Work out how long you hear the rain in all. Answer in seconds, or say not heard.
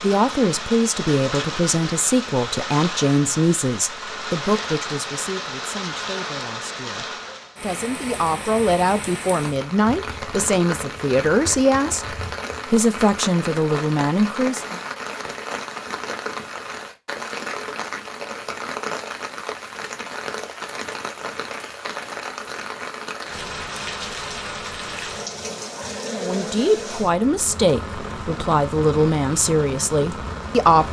31 s.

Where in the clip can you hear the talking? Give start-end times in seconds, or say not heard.
0.0-14.8, 26.1-30.8.